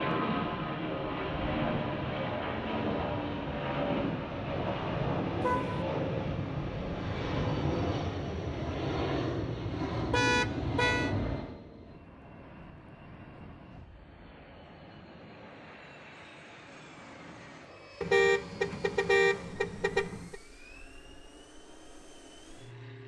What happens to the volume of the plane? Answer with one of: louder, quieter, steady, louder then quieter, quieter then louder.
quieter.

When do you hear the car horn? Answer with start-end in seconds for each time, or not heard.
5.4-5.8, 10.1-11.2, 18.0-20.4.